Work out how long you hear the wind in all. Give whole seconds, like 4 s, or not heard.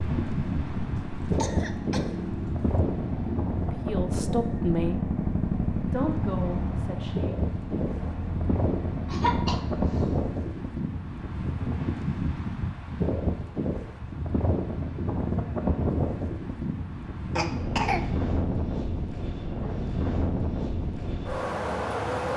22 s.